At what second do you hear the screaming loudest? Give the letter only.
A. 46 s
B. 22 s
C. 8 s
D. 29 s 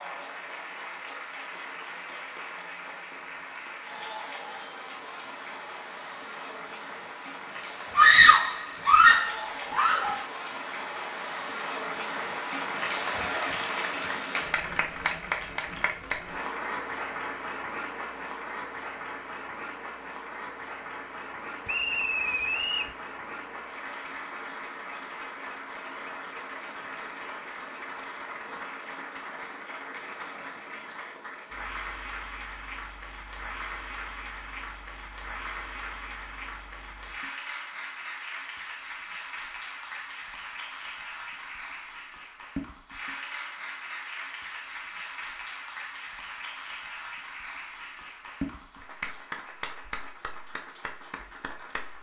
C.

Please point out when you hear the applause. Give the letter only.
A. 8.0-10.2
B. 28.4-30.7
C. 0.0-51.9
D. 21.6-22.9
C.